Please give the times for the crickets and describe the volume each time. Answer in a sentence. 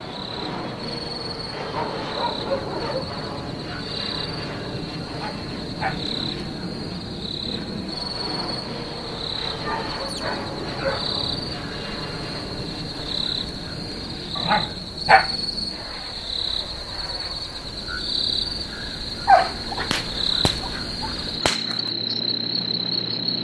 The crickets can be heard from 0.0 to 23.4 s, getting louder.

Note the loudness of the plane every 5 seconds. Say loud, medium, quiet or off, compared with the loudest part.
loud, loud, loud, medium, loud.